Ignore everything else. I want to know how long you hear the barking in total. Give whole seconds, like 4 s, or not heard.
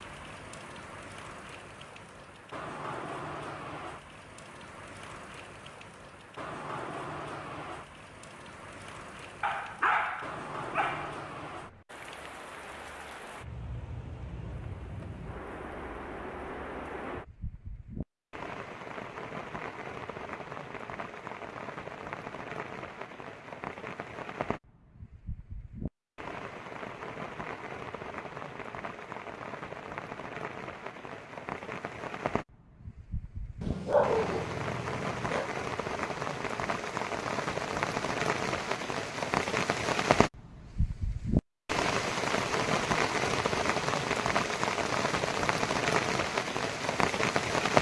4 s.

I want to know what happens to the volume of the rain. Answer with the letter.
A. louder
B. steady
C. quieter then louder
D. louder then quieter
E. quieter
A.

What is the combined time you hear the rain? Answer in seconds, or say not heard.
48 s.